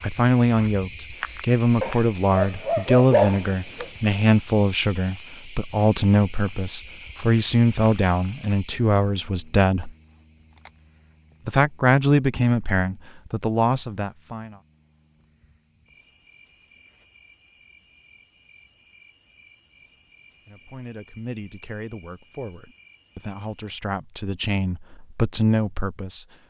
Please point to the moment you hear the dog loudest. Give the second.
3 s.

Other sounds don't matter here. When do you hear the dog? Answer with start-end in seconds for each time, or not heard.
1.8-3.9.